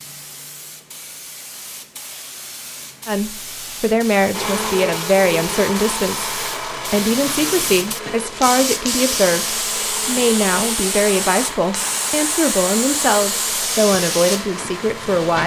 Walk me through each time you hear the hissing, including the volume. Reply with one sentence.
The hissing can be heard from 0.0 to 15.4 s, getting louder.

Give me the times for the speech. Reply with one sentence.
You can hear the speech from 3.0 to 15.4 s.